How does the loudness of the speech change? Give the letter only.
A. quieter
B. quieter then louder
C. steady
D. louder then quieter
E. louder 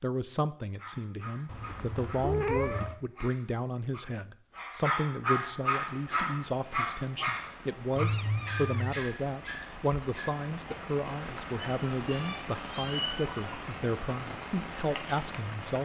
C.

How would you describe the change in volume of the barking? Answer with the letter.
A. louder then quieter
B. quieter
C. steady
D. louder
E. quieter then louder
A.